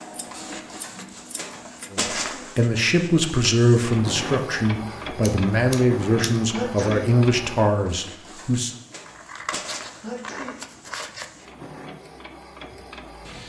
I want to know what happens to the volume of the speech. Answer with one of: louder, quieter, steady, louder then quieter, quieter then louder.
steady.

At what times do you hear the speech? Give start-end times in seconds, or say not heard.
1.9-8.7.